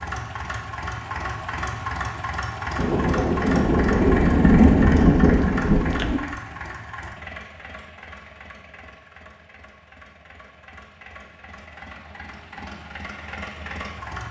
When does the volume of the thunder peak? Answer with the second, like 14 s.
5 s.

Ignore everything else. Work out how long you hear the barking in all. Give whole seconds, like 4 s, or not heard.
not heard.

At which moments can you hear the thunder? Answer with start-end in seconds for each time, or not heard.
2.8-6.2.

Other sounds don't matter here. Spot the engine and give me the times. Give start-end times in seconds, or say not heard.
0.0-14.2.